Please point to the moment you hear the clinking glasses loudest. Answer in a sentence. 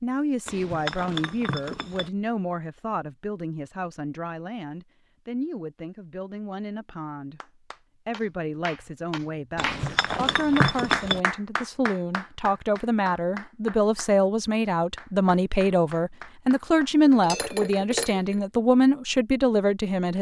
The volume of the clinking glasses peaks at 11 seconds.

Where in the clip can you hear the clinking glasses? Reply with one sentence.
The clinking glasses can be heard from 0.5 to 2.1 s, from 9.6 to 11.2 s and from 17.1 to 18.4 s.